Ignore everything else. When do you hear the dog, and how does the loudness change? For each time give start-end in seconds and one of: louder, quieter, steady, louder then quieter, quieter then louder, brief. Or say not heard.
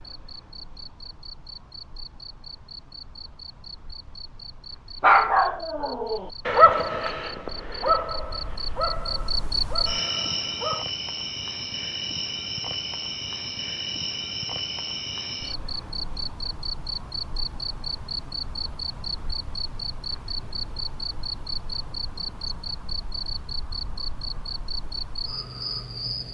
5.0-10.8 louder then quieter.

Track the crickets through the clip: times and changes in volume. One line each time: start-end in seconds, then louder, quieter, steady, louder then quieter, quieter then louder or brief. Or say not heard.
0.0-26.2 louder.